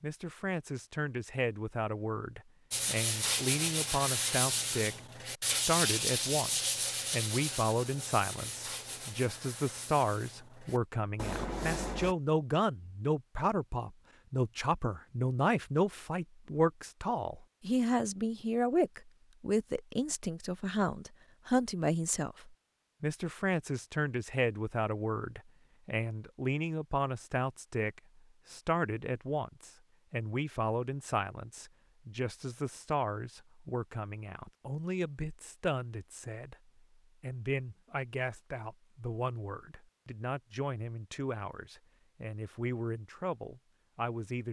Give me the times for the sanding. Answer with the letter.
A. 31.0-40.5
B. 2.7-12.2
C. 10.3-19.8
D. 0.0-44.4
B.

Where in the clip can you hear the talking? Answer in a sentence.
You can hear the talking from 0.0 to 44.4 s.